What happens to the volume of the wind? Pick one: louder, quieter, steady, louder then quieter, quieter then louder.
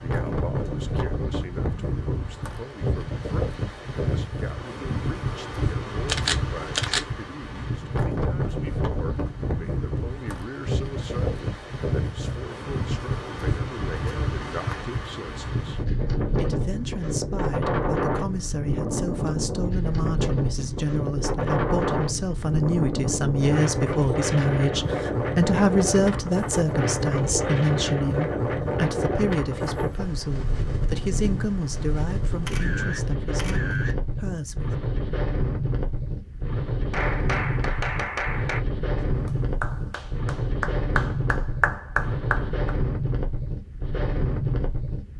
steady.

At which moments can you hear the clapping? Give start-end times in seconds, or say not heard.
36.9-42.8.